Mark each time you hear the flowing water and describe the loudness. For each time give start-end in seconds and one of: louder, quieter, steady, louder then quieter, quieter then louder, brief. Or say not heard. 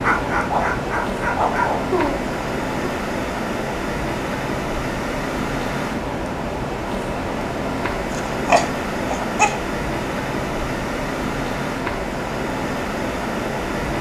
0.0-13.9 steady.